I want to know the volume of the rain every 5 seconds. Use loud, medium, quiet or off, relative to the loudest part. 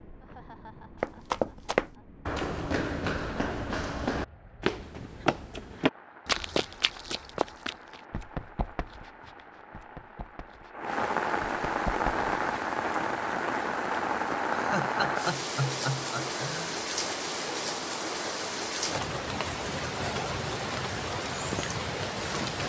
quiet, quiet, loud, loud, loud.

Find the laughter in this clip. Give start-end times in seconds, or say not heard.
0.2-2.1, 14.5-16.8.